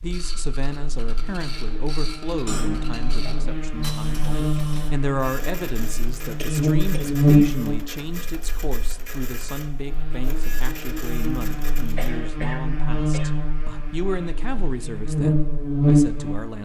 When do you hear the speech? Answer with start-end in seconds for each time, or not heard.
0.0-16.5.